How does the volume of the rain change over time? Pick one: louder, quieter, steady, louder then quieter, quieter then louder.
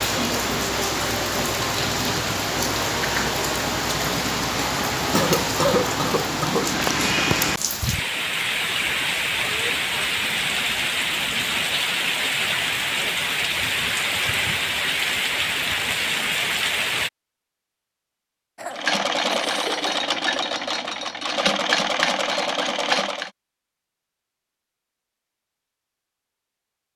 steady.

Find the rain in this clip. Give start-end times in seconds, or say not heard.
0.0-17.1.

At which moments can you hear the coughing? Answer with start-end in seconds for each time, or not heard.
5.2-6.8, 18.6-19.9.